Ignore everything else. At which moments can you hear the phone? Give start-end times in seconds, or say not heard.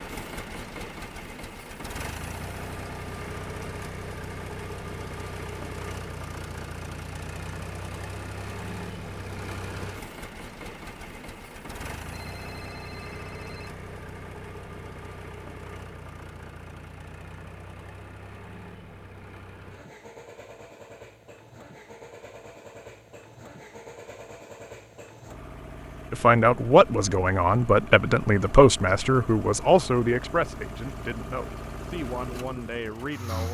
12.1-13.8.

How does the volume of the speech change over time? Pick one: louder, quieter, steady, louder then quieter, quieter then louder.
quieter.